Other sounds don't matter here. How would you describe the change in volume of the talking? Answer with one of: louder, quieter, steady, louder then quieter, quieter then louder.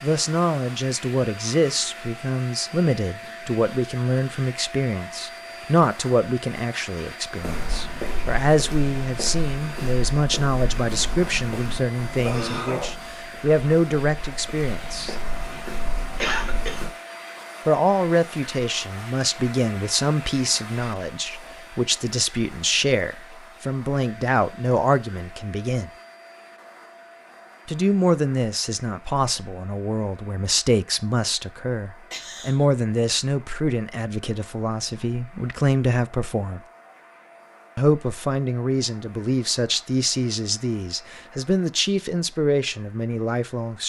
steady.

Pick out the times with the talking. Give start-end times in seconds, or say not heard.
0.0-15.2, 17.6-25.9, 27.6-36.6, 37.8-43.8.